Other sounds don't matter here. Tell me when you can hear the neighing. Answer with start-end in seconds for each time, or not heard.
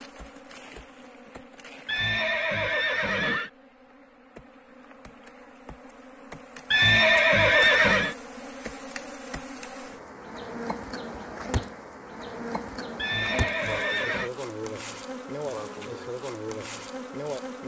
1.9-3.5, 6.7-8.2, 12.9-14.3.